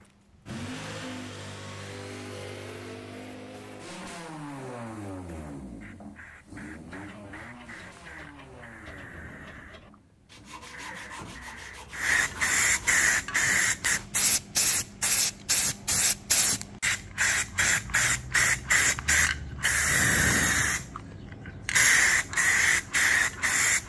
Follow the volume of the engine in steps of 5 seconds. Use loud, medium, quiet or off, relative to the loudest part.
loud, medium, quiet, off, off.